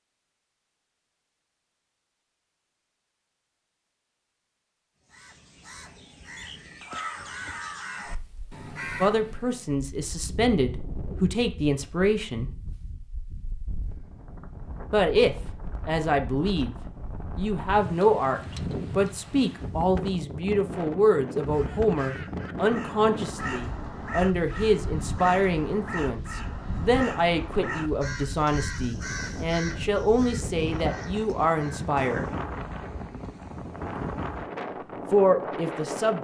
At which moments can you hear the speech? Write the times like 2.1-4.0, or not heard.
9.0-12.5, 14.9-16.8, 17.4-32.3, 35.1-36.1.